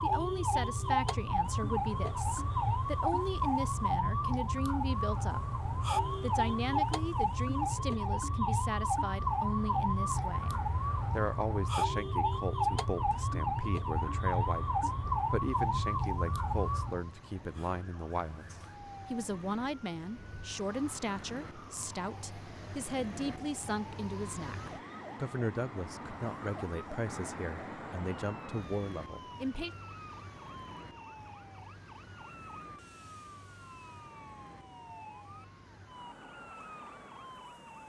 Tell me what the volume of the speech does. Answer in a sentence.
The volume of the speech stays about the same.